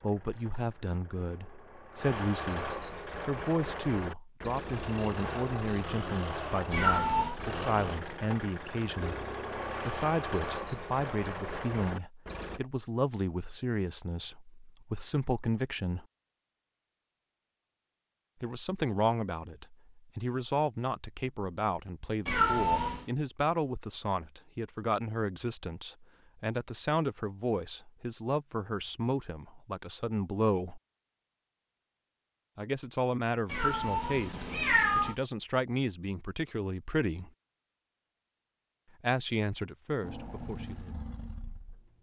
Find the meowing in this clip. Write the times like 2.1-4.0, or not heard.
6.7-7.3, 22.2-23.1, 33.5-35.1.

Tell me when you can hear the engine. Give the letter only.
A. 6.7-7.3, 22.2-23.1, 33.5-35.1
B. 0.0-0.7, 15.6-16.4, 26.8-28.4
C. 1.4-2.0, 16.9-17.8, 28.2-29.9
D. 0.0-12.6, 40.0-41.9
D.